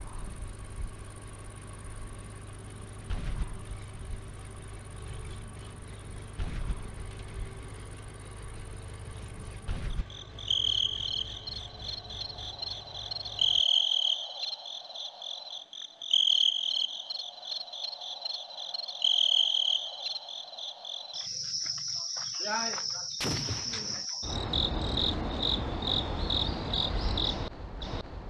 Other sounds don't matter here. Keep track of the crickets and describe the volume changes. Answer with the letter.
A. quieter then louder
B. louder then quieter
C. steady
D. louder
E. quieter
D.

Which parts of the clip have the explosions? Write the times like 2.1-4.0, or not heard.
23.2-24.1.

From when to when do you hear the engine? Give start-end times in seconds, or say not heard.
0.0-13.7.